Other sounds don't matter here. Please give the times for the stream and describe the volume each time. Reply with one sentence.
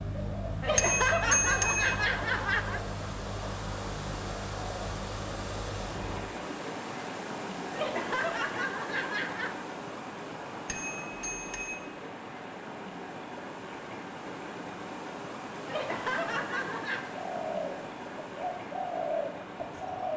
The stream can be heard from 0.0 to 20.1 s, at a steady volume.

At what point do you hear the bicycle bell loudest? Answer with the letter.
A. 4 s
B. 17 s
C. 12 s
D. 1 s
D.